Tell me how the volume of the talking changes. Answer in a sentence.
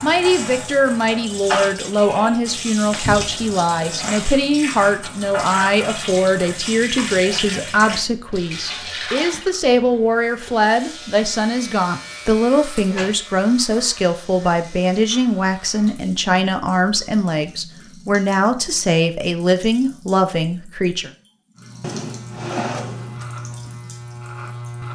The volume of the talking stays about the same.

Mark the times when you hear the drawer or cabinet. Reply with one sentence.
The drawer or cabinet can be heard from 3.0 to 3.5 s, from 12.9 to 13.5 s and from 21.8 to 23.2 s.